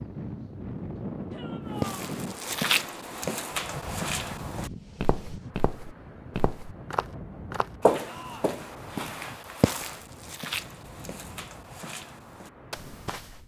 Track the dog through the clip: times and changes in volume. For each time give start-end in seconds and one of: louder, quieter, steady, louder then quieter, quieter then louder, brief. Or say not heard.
not heard.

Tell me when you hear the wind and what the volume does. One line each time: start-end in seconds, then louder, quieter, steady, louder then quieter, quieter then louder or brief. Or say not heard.
0.0-13.4 quieter.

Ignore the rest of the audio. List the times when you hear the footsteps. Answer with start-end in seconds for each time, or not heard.
1.8-13.4.